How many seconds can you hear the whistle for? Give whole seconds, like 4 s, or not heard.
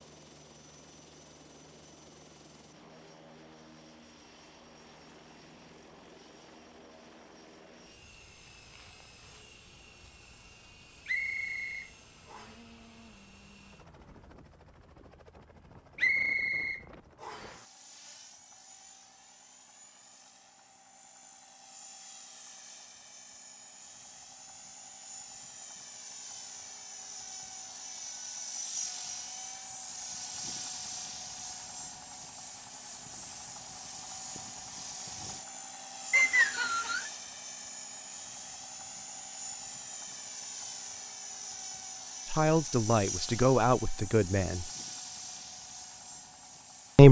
4 s.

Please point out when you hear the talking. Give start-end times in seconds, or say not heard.
42.3-44.6.